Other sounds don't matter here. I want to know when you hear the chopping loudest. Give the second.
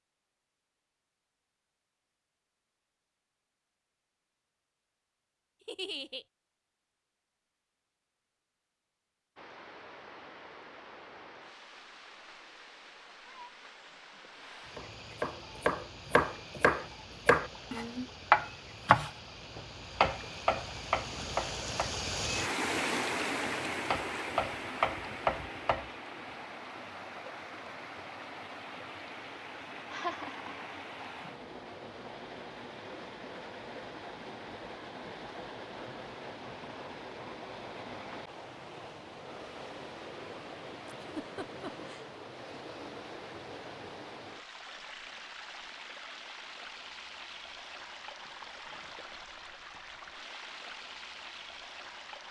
18 s.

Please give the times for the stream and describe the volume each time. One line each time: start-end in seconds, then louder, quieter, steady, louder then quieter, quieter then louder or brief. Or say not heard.
9.3-52.2 louder then quieter.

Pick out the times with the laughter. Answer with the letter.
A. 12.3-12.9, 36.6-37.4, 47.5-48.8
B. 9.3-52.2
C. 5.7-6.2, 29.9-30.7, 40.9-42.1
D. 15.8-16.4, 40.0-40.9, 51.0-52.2
C.